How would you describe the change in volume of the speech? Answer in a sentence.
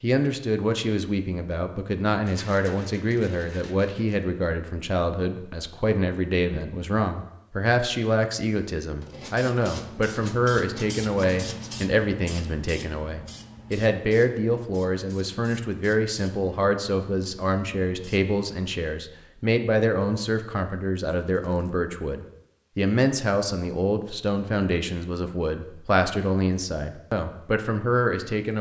The volume of the speech stays about the same.